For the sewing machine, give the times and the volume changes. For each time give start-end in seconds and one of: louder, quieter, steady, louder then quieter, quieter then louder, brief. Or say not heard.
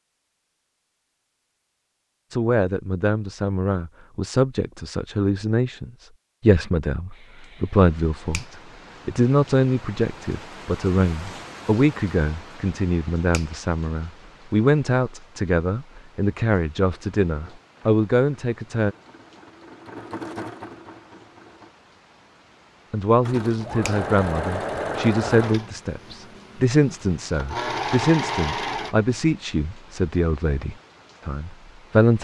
16.8-21.8 louder then quieter
23.2-28.9 quieter then louder.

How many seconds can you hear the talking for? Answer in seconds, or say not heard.
26 s.